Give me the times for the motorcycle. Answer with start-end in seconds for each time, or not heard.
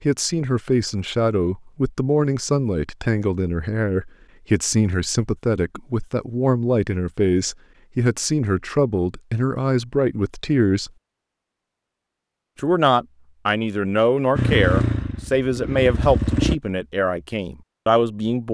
14.3-16.6.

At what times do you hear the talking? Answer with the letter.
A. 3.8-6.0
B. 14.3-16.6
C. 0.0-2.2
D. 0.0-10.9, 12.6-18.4
D.